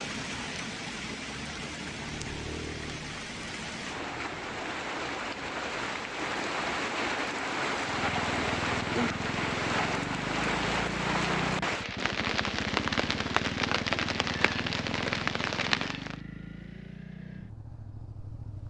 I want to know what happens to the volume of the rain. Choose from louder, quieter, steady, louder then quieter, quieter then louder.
louder.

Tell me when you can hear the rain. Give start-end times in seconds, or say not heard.
0.0-16.2.